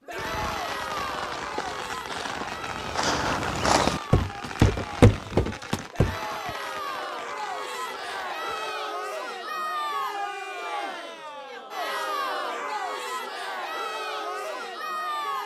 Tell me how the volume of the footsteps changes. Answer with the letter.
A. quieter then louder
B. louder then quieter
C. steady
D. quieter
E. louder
B.